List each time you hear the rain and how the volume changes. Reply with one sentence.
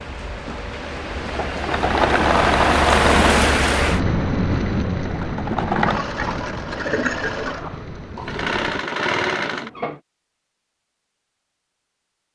You can hear the rain from 0.0 to 8.8 s, getting louder then quieter.